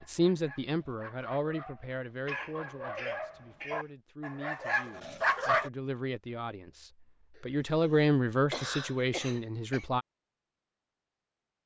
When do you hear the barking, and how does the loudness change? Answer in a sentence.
You can hear the barking from 0.0 to 5.7 s, getting louder.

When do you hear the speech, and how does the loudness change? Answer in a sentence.
You can hear the speech from 0.0 to 10.1 s, getting quieter then louder.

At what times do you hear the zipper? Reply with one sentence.
You can't hear the zipper here.